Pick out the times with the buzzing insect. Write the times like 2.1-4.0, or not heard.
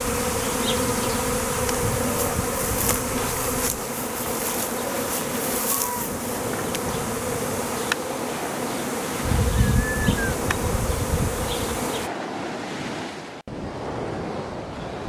0.0-12.1.